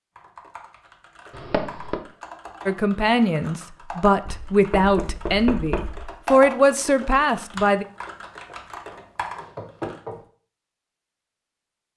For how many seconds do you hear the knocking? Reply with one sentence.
The knocking can be heard for 4 seconds in total.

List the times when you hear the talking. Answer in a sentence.
You can hear the talking from 2.6 to 7.8 s.